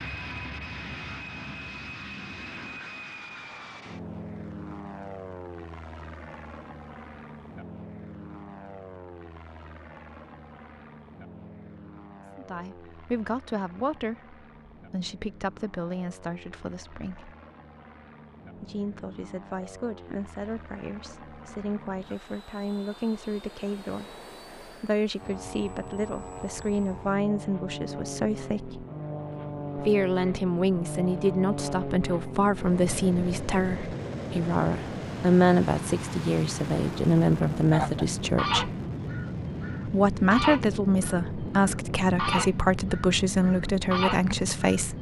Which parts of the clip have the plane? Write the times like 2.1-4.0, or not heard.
0.0-44.9.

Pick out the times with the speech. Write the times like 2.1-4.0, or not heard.
12.3-17.4, 18.6-28.9, 29.8-38.7, 39.9-44.9.